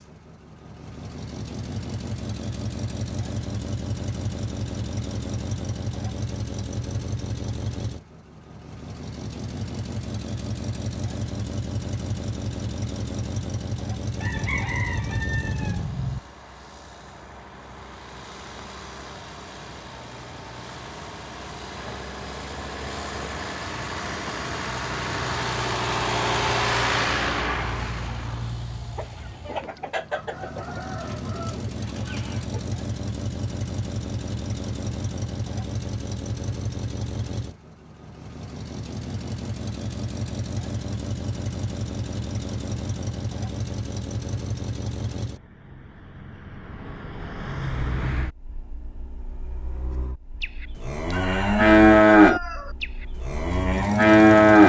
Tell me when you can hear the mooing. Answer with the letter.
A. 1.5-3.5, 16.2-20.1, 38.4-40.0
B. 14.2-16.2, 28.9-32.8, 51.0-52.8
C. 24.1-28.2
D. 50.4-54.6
D.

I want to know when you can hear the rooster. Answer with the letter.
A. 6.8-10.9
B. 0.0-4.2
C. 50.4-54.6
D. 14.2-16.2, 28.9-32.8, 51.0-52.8
D.